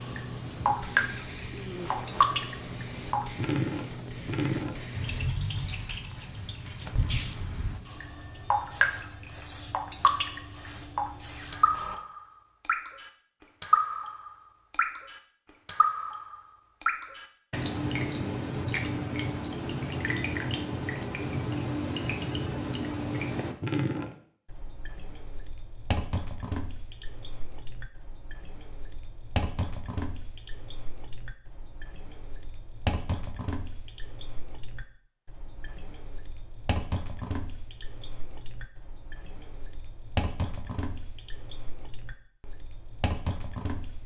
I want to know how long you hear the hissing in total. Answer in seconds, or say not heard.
12 s.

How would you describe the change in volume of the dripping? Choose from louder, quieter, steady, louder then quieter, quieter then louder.
quieter.